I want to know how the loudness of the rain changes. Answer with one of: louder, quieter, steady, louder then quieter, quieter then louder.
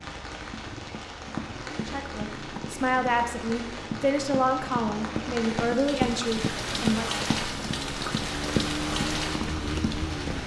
louder.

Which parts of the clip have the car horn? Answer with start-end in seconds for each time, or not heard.
not heard.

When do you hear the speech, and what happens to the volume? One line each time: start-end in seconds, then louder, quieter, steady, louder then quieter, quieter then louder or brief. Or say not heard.
1.8-7.1 steady.